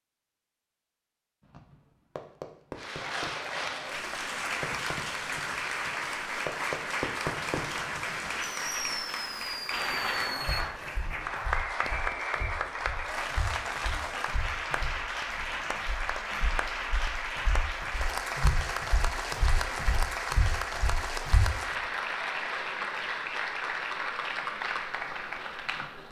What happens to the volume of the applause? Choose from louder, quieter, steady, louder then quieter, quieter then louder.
steady.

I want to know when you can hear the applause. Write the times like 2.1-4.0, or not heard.
2.8-26.0.